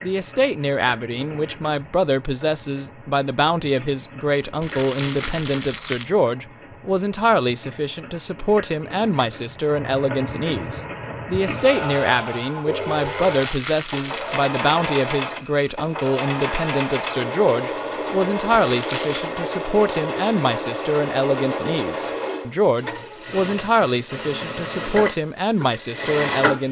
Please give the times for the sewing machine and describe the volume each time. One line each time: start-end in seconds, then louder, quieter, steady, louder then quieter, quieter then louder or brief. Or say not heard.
0.0-26.6 louder.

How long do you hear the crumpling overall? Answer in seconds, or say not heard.
4 s.